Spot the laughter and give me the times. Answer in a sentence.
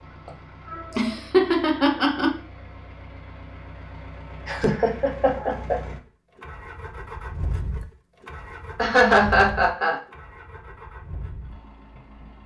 You can hear the laughter from 0.2 to 2.4 s, from 4.5 to 5.8 s and from 8.8 to 10.0 s.